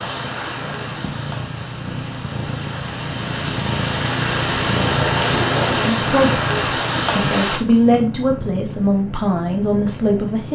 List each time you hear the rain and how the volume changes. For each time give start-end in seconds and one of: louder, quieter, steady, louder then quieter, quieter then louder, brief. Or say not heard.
0.0-7.6 louder.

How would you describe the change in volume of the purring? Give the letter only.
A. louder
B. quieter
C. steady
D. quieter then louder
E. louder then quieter
E.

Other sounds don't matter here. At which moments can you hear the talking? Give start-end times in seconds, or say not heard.
5.8-10.5.